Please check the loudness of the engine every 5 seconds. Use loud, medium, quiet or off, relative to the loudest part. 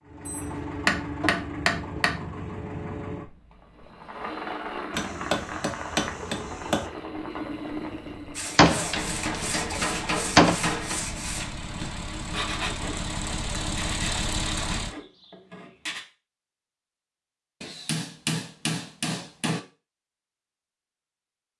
loud, loud, loud, off, off.